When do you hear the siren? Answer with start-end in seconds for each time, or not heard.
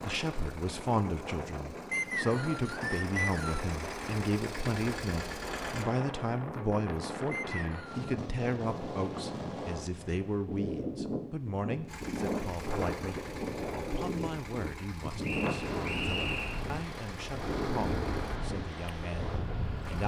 not heard.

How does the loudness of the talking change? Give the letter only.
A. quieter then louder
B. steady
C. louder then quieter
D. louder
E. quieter
E.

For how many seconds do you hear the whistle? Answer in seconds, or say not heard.
4 s.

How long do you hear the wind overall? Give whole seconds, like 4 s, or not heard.
20 s.